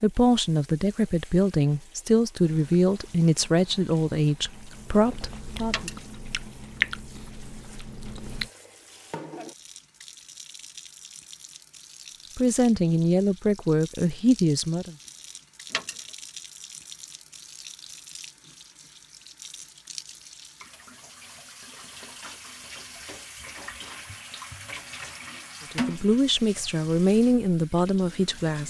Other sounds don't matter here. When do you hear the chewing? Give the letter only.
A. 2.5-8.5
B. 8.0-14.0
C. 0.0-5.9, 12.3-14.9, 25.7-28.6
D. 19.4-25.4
A.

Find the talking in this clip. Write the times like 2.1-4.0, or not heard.
0.0-5.9, 12.3-14.9, 25.7-28.6.